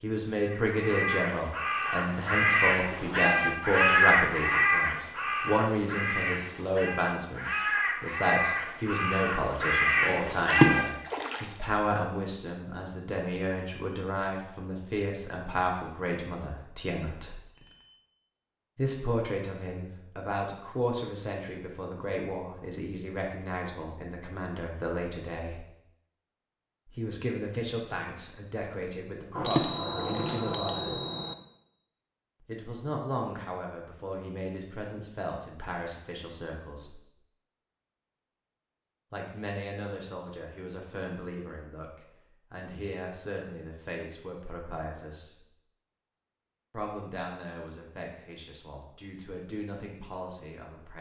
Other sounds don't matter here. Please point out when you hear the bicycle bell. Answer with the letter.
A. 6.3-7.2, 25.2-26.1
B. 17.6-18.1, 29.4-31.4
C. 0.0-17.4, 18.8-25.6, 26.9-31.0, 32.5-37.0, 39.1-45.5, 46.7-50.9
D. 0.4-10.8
B.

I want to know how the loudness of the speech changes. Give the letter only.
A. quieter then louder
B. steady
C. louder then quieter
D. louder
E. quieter
E.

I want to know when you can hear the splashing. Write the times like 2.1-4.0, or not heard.
10.5-11.4, 29.4-30.4.